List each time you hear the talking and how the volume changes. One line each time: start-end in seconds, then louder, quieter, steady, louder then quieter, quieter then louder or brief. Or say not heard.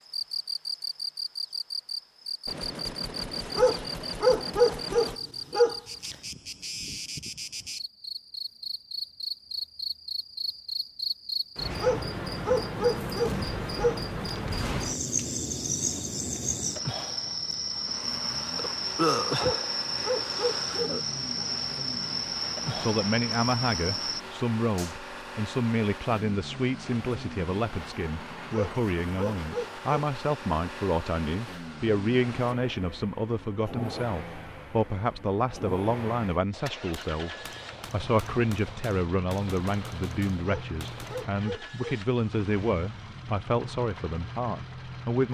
22.8-45.2 steady.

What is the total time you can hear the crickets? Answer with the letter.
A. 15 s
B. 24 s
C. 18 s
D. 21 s
B.